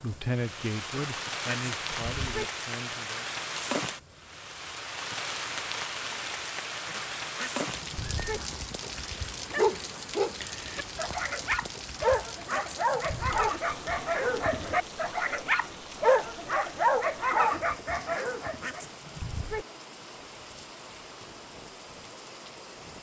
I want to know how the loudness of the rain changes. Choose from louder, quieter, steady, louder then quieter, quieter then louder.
quieter.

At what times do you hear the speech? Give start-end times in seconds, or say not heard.
0.0-3.3.